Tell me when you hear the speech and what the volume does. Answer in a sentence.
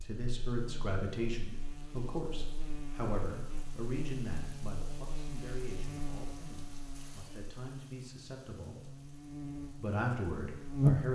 You can hear the speech from 0.0 to 11.1 s, getting quieter then louder.